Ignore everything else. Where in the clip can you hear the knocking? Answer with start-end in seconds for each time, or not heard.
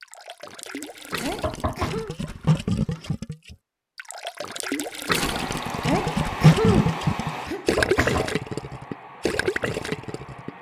1.4-3.1, 7.8-8.3.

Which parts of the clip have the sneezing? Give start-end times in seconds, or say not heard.
1.1-2.1, 5.8-8.3.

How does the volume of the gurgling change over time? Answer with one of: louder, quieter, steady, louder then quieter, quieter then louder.
louder then quieter.